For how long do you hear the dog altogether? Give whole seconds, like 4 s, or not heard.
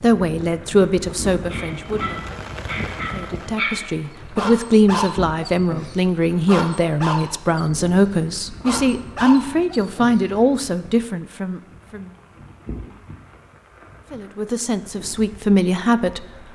9 s.